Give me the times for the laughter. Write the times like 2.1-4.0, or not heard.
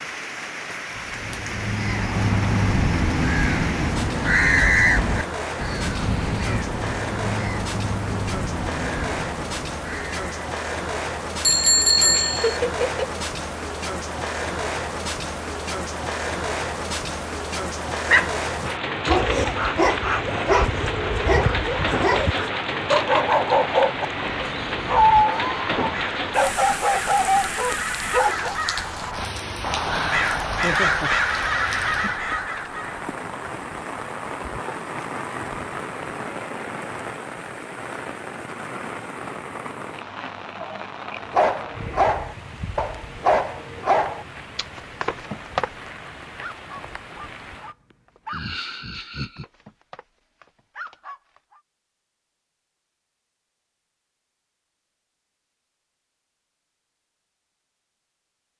12.1-13.2, 30.6-31.1, 48.2-49.5.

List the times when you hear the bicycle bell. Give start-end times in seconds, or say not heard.
11.4-12.6.